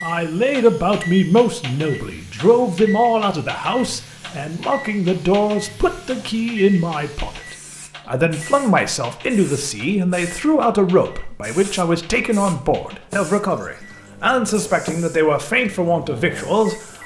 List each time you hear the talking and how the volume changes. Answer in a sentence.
You can hear the talking from 0.0 to 16.8 s, at a steady volume.